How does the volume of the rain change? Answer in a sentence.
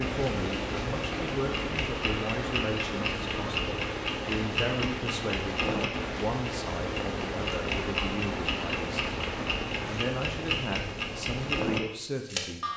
The volume of the rain stays about the same.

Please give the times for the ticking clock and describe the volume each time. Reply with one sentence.
You can hear the ticking clock from 0.0 to 12.7 s, at a steady volume.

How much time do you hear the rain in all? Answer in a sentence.
The rain can be heard for 10 seconds in total.